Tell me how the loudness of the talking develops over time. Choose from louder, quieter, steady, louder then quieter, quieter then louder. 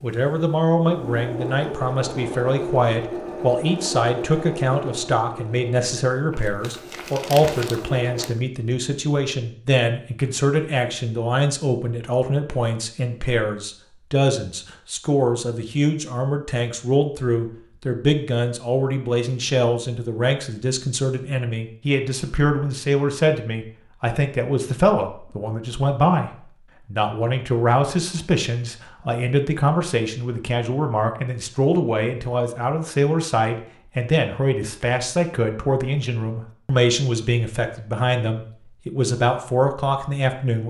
steady.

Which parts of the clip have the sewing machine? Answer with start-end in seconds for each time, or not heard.
0.0-8.3.